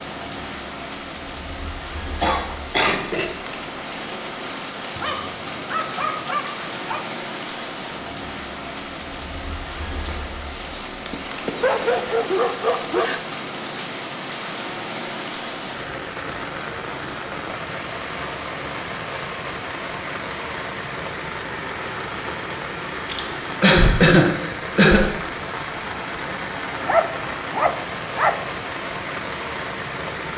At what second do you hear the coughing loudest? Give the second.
24 s.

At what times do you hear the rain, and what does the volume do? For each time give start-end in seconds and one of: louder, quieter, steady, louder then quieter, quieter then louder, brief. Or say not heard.
0.0-30.3 steady.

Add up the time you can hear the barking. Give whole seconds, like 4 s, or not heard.
5 s.